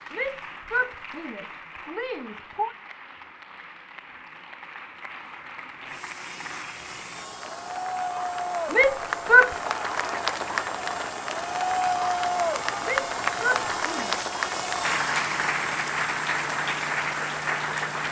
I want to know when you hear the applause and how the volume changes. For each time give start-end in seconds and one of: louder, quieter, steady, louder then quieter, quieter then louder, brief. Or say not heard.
0.0-18.0 louder.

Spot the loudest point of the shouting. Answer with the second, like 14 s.
9 s.